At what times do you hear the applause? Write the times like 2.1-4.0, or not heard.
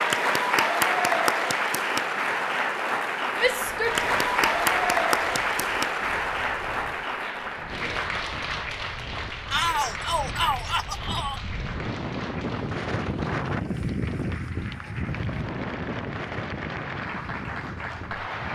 0.0-18.4.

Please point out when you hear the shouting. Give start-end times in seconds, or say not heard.
3.4-4.0, 9.5-11.4.